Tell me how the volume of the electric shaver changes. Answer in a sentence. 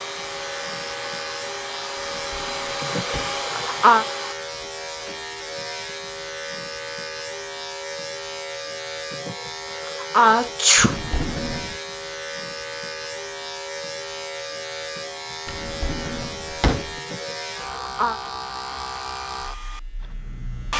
The loudness of the electric shaver stays about the same.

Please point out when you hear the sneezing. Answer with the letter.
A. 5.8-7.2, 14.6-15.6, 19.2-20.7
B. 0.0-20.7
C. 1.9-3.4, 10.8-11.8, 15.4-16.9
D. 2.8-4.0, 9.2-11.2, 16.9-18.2
D.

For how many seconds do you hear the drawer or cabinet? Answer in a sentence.
The drawer or cabinet can be heard for 4 seconds in total.